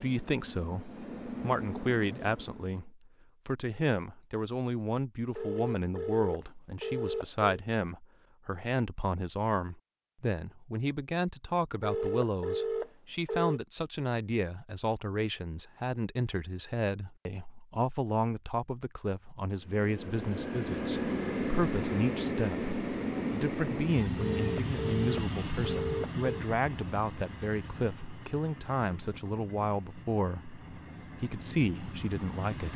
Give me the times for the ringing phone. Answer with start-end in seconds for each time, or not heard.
5.3-7.6, 11.8-13.6, 24.1-26.4.